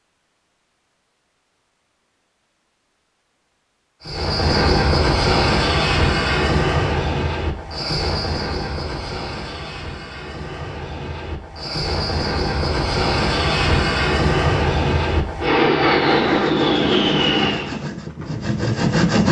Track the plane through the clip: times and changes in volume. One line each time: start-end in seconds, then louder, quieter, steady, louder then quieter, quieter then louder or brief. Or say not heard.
4.0-17.8 quieter then louder.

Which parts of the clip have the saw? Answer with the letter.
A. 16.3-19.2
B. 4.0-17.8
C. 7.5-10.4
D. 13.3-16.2
A.